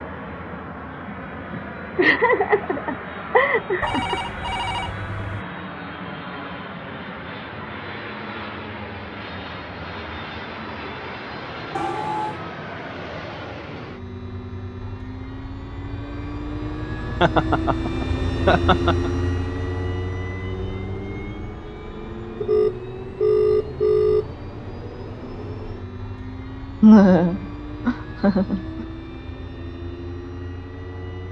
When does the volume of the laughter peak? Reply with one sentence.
The loudest moment of the laughter is at 27 seconds.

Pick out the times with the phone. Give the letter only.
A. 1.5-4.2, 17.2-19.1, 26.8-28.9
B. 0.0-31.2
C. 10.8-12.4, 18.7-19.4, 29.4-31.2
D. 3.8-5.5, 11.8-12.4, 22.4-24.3
D.